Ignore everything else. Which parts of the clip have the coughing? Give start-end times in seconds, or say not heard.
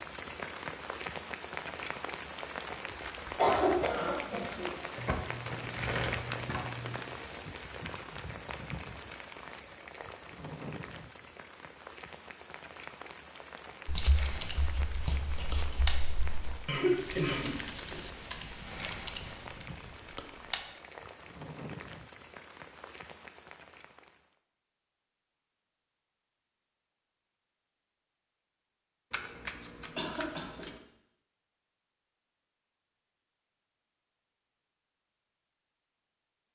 3.2-4.7, 16.6-17.9, 29.9-30.6.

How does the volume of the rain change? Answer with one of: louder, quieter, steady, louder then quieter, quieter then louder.
quieter.